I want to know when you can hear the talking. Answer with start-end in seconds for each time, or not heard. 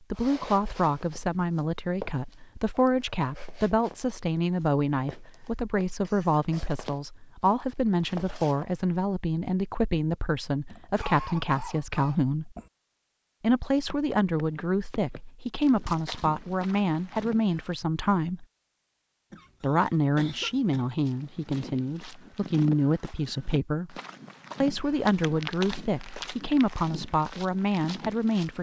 0.1-12.6, 13.4-18.4, 19.6-24.0, 24.6-28.5.